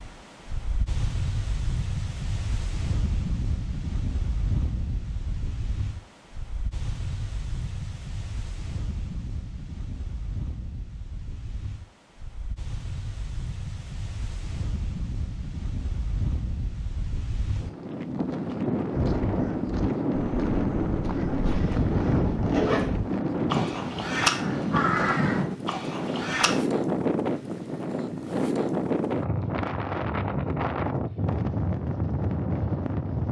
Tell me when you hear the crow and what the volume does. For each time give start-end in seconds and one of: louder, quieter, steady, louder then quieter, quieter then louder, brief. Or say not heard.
18.9-26.6 louder.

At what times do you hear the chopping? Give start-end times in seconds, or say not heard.
not heard.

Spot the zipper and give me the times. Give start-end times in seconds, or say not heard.
21.4-22.9.